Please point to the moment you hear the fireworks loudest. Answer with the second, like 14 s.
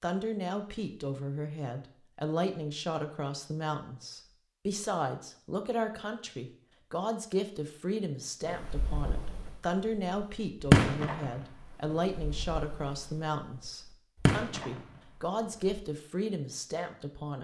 11 s.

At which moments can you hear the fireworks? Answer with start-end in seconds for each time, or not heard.
8.4-15.8.